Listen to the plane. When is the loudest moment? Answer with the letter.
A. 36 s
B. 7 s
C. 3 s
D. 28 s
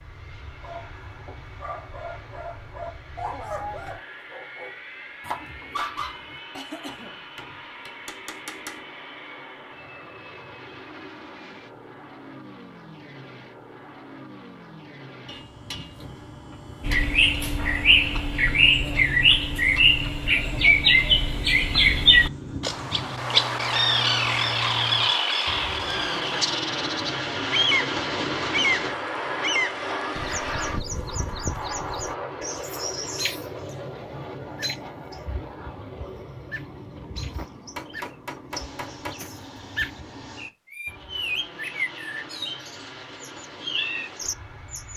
D.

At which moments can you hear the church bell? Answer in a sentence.
The church bell can't be heard in this clip.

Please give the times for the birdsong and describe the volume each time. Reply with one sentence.
You can hear the birdsong from 16.9 to 44.9 s, getting quieter then louder.